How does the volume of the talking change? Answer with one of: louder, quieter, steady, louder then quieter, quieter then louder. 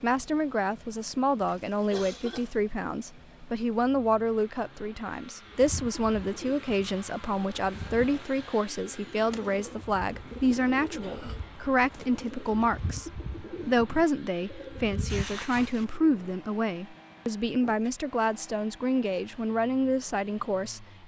steady.